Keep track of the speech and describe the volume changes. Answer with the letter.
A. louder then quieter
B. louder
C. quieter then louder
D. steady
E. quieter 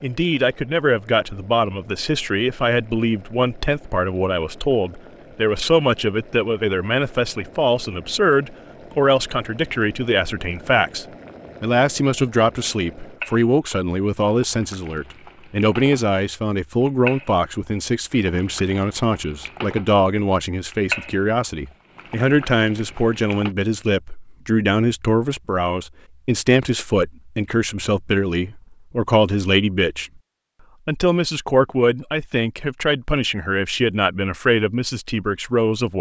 D.